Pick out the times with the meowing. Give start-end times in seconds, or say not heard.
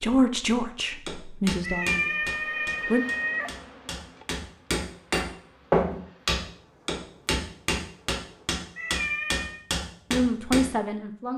1.6-3.5, 8.8-9.6.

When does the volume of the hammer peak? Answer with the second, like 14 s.
6 s.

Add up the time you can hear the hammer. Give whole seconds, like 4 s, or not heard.
10 s.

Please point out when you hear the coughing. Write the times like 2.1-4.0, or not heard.
not heard.